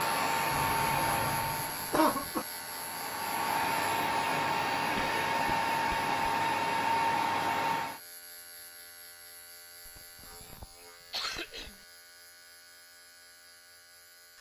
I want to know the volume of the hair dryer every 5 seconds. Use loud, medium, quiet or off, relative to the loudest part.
loud, loud, off.